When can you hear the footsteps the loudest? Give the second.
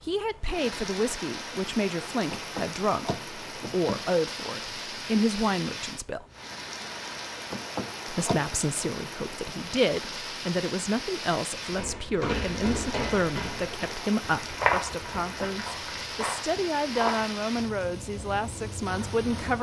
15 s.